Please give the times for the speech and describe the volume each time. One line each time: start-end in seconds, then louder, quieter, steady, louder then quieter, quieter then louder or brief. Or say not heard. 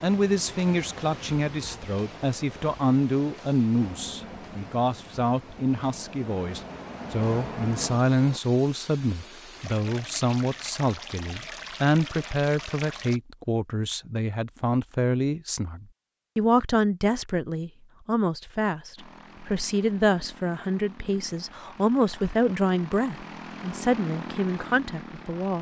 0.0-25.5 steady.